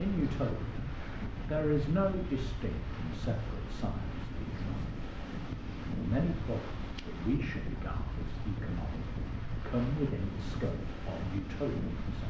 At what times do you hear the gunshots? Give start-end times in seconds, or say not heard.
not heard.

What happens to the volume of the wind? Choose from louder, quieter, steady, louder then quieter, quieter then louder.
steady.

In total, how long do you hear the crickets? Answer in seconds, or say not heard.
not heard.